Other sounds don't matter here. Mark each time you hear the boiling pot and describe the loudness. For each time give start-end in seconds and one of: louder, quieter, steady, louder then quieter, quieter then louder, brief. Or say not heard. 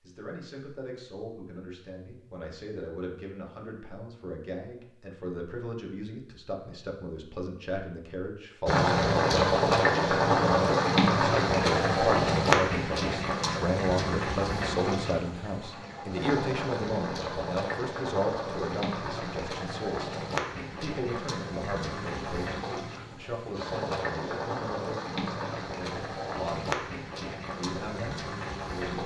8.7-29.0 quieter.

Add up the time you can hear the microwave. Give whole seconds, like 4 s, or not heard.
not heard.